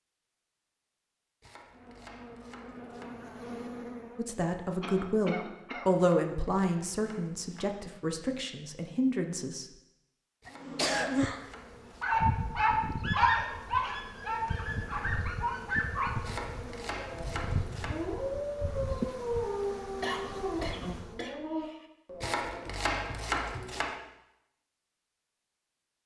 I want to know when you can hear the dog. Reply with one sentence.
You can hear the dog from 12.0 to 22.6 s.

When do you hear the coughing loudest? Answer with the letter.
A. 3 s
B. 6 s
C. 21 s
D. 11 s
D.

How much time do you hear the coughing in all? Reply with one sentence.
The coughing can be heard for 4 seconds in total.